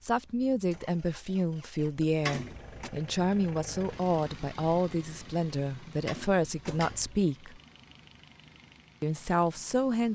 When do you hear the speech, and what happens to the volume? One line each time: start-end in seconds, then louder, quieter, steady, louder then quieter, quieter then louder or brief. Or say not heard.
0.0-7.6 steady
9.0-10.1 brief.